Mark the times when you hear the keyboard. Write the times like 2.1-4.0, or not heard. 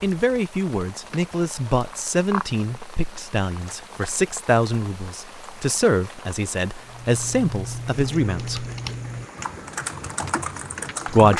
6.8-11.3.